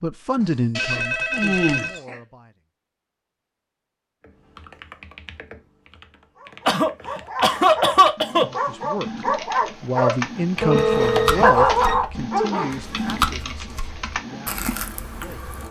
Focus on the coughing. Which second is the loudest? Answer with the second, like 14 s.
8 s.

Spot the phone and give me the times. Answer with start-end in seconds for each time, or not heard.
0.8-2.0, 10.6-11.9.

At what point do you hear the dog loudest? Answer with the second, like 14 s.
12 s.